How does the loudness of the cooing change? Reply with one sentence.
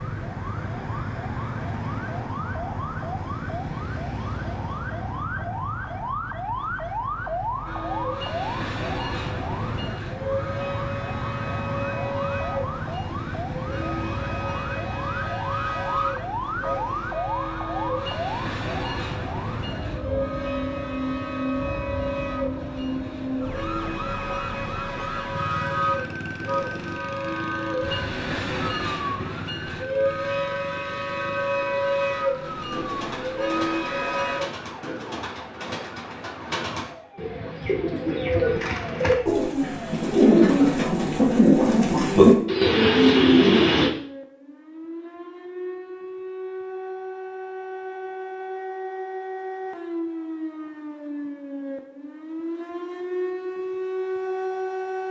The volume of the cooing goes up.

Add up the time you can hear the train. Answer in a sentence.
The train can be heard for 27 seconds in total.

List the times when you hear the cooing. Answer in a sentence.
You can hear the cooing from 32.7 to 43.9 s.